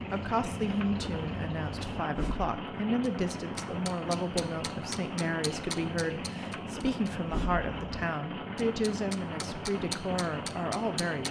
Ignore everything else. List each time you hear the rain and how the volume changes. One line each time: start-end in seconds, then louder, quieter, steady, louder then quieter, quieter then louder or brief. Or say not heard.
0.0-11.2 steady.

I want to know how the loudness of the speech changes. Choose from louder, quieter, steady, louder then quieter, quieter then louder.
steady.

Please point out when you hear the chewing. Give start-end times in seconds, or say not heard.
not heard.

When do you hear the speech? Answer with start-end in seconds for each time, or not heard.
0.0-11.2.